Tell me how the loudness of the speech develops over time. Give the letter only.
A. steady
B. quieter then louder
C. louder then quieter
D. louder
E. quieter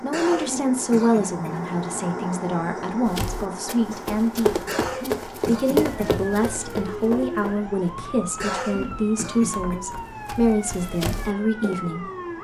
A.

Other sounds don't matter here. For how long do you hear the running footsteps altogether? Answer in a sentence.
The running footsteps can be heard for 9 seconds in total.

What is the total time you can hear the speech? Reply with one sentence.
The speech can be heard for 11 seconds in total.